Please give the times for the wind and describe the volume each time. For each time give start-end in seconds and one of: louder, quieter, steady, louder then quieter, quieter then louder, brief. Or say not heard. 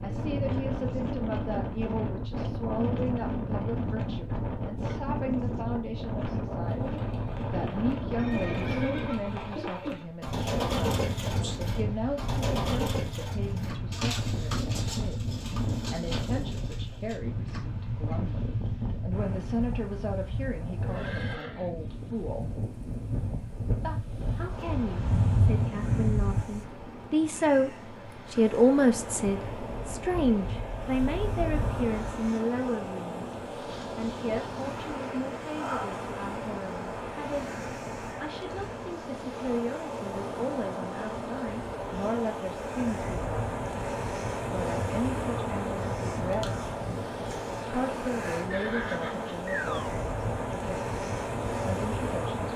0.0-52.5 steady.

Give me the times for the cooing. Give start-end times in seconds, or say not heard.
6.6-17.2.